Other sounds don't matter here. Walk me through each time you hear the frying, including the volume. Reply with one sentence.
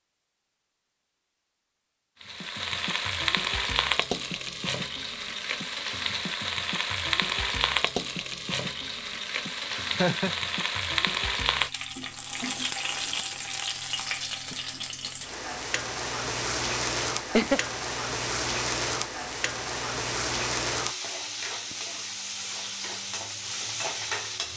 You can hear the frying from 2.2 to 24.5 s, at a steady volume.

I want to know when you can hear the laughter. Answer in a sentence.
You can hear the laughter from 9.8 to 10.3 s and from 17.1 to 17.7 s.